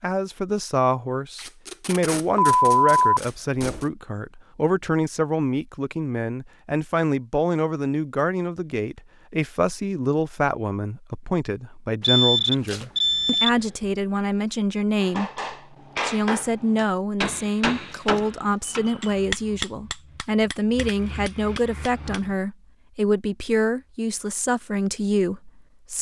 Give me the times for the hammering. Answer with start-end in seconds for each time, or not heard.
14.9-22.4.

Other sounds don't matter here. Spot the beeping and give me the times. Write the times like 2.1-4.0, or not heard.
2.4-3.9, 12.0-13.8, 18.6-19.5.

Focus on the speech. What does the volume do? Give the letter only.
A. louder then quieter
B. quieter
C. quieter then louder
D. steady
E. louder
D.